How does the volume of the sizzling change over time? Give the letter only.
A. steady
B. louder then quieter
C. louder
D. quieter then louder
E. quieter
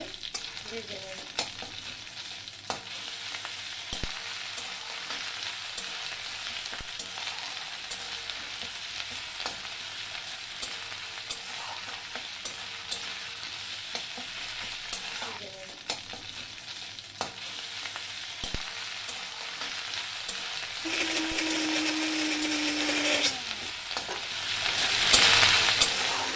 C.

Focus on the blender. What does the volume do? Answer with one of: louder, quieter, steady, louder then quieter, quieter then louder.
quieter.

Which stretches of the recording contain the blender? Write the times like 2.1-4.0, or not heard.
20.8-26.3.